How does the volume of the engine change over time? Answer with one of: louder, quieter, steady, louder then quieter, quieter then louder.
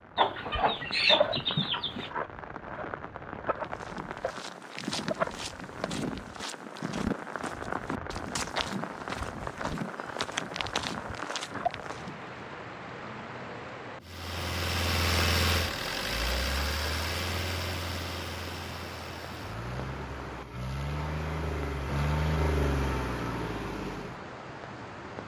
quieter then louder.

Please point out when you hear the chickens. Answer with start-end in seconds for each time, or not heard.
0.1-2.1.